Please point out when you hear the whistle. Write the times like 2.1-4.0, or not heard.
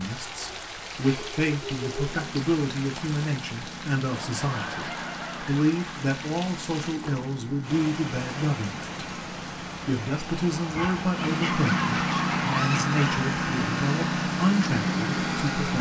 not heard.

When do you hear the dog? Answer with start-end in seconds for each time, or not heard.
0.1-2.4, 10.7-13.2.